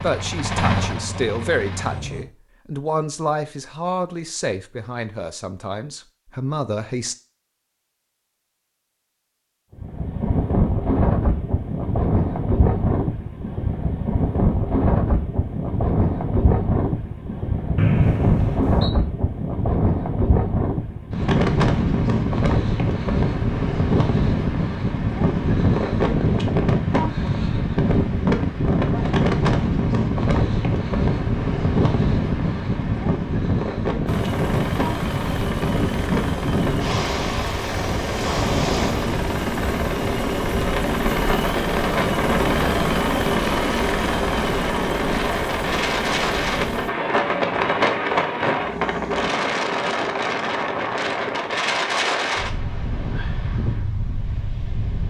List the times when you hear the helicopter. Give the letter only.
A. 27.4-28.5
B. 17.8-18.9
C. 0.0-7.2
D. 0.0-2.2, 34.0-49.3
D.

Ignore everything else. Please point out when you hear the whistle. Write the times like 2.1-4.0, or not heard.
17.8-18.9.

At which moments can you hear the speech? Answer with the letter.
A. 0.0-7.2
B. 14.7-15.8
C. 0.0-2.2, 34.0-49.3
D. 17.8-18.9
A.